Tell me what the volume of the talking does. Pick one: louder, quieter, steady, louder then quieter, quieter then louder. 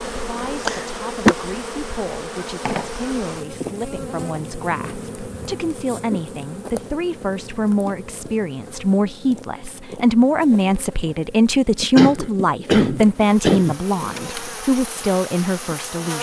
louder.